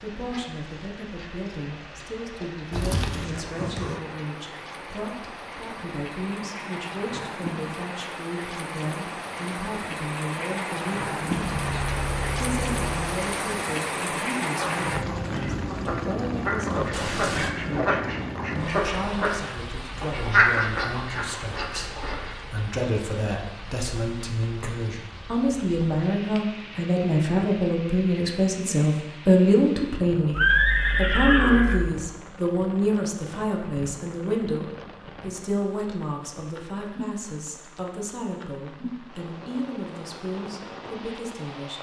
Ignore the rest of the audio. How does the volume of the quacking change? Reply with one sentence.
The volume of the quacking goes up, then down.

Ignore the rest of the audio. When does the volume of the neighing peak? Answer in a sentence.
The volume of the neighing peaks at 31 seconds.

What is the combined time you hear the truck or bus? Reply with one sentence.
You can hear the truck or bus for 2 seconds altogether.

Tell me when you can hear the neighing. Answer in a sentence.
The neighing can be heard from 2.7 to 4.0 s, from 16.9 to 17.6 s and from 30.3 to 31.9 s.